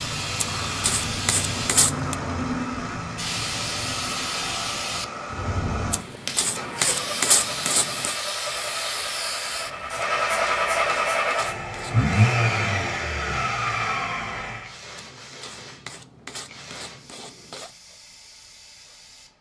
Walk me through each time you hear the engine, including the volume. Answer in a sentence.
You can hear the engine from 0.0 to 14.7 s, getting louder.